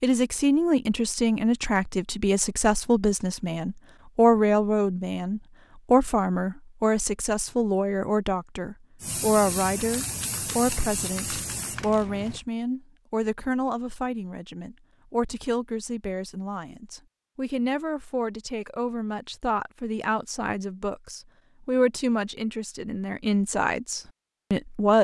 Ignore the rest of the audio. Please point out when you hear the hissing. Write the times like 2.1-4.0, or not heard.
9.0-12.4.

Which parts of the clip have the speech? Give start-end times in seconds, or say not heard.
0.0-25.0.